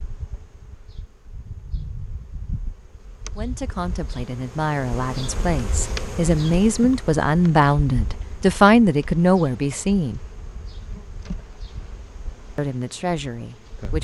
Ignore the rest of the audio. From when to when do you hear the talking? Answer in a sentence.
The talking can be heard from 3.4 to 10.2 s and from 12.6 to 13.9 s.